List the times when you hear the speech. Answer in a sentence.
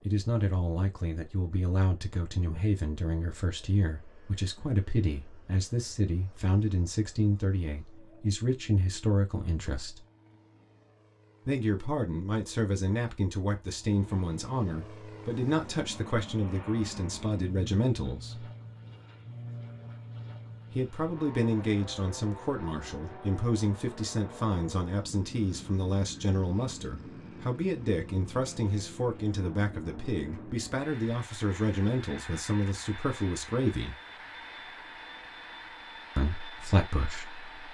The speech can be heard from 0.1 to 10.1 s, from 11.4 to 18.5 s, from 20.7 to 34.0 s and from 36.1 to 37.5 s.